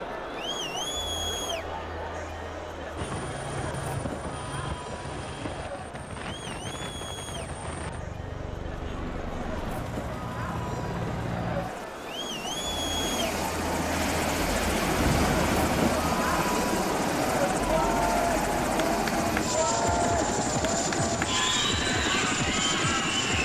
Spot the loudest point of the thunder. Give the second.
15 s.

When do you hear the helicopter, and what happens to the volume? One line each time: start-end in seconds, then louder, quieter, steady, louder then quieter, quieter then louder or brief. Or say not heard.
3.0-23.3 louder.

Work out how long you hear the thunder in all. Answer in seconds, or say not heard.
2 s.